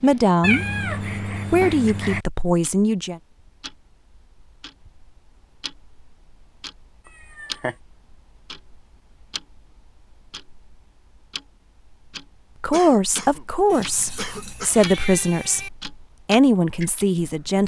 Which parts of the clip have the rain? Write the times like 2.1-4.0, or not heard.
not heard.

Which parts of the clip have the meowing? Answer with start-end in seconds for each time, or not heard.
0.4-2.2, 7.3-7.8, 13.7-15.7.